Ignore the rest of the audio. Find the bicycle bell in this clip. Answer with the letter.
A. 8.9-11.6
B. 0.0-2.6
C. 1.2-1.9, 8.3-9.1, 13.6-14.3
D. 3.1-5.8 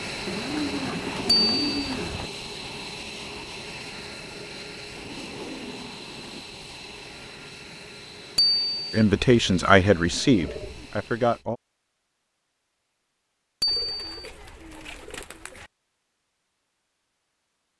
C.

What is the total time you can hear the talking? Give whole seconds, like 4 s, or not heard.
3 s.